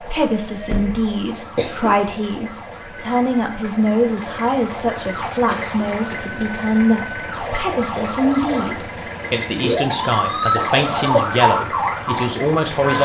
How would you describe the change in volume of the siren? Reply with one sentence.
The volume of the siren goes up.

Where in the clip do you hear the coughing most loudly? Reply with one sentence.
The volume of the coughing peaks at 11 seconds.